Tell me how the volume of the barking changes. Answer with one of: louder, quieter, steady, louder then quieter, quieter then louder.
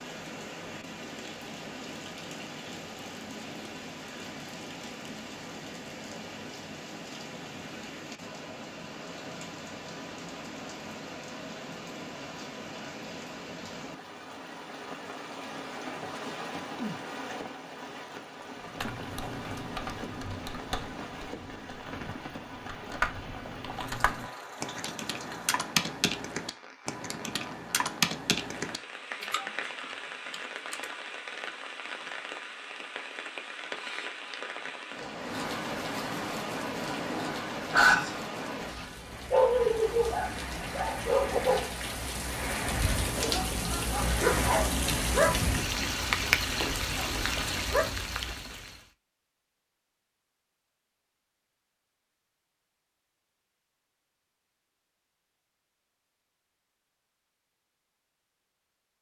quieter.